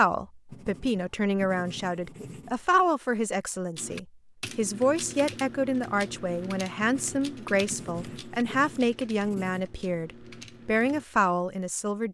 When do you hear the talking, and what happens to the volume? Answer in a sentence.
The talking can be heard from 0.0 to 12.0 s, at a steady volume.